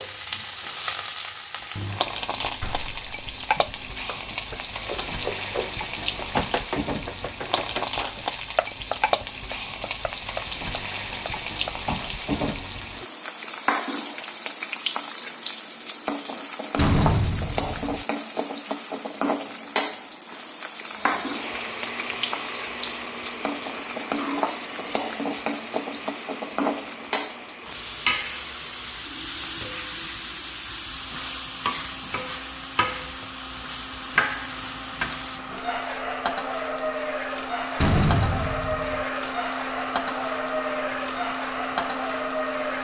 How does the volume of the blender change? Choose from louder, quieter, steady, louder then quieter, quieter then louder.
quieter then louder.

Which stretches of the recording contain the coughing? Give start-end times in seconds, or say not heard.
not heard.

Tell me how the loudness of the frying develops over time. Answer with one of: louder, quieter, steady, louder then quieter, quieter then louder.
steady.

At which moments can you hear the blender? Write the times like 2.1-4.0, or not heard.
20.9-42.7.